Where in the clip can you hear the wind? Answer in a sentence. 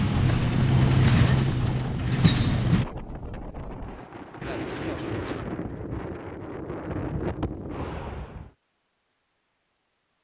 The wind can be heard from 0.0 to 8.5 s.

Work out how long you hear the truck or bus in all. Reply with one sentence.
The truck or bus can be heard for 3 seconds in total.